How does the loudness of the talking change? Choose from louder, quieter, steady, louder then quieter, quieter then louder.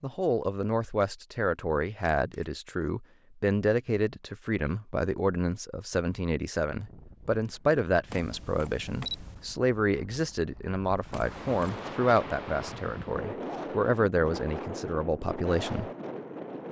steady.